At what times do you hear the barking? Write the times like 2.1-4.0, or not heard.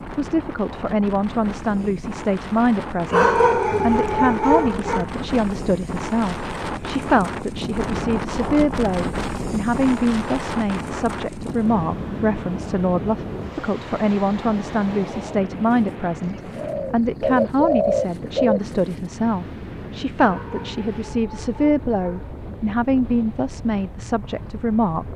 3.1-5.0, 20.2-22.4.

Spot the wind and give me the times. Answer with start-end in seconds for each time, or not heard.
0.0-25.1.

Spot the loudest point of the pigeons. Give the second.
18 s.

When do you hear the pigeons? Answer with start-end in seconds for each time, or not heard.
16.2-18.8.